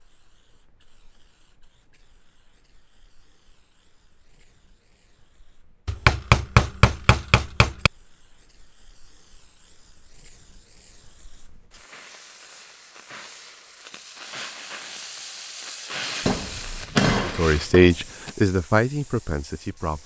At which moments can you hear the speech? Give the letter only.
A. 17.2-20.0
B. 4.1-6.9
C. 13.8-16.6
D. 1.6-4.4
A.